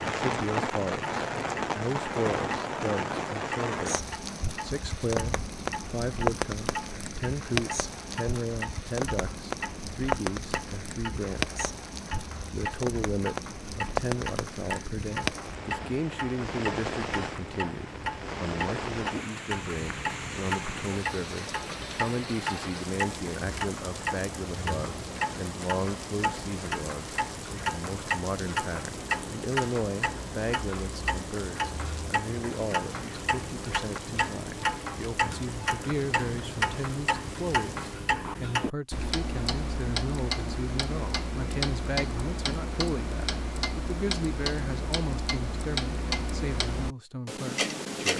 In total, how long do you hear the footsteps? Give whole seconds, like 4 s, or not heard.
not heard.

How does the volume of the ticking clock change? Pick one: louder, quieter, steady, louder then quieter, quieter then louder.
louder.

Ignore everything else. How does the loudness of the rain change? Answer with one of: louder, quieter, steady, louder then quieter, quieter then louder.
quieter.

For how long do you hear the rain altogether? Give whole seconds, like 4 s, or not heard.
38 s.